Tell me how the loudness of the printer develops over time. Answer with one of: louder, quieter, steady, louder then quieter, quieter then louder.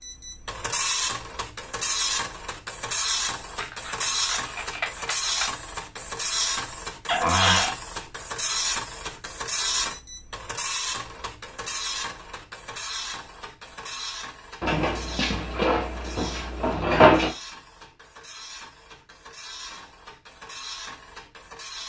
quieter.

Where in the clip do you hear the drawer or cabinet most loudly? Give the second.
17 s.